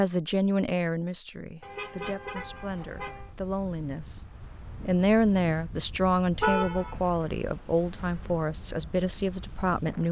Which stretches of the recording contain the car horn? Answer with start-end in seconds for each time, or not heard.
1.6-3.4, 6.4-7.0.